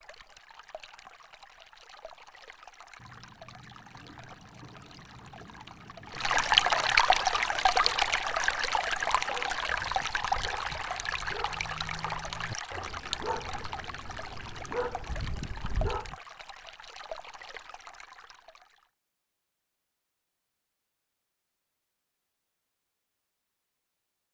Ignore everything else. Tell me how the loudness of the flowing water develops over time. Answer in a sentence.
The volume of the flowing water goes up, then down.